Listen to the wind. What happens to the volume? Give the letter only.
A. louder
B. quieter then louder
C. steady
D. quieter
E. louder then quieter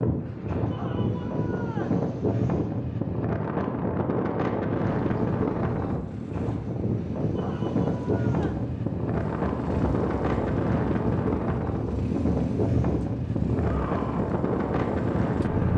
C.